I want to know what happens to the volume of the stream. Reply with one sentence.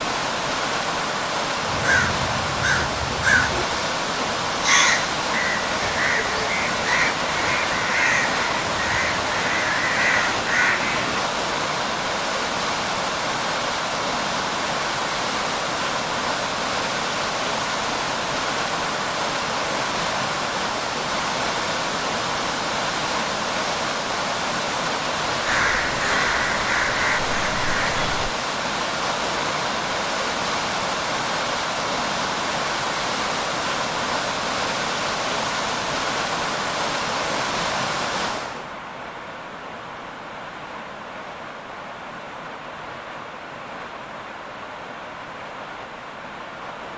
The loudness of the stream goes down.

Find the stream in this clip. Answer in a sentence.
You can hear the stream from 0.0 to 46.9 s.